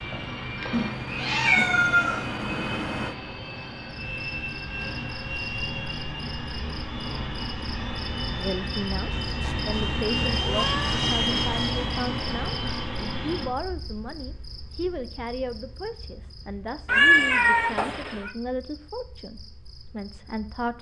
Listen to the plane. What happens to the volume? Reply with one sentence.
The volume of the plane goes up.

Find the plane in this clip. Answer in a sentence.
The plane can be heard from 0.0 to 13.5 s.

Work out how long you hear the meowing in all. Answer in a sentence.
The meowing can be heard for 6 seconds in total.